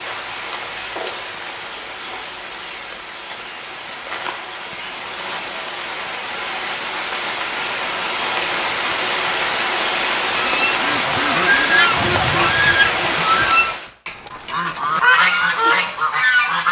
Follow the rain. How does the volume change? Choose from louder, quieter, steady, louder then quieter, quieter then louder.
louder.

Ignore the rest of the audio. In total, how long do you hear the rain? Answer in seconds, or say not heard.
14 s.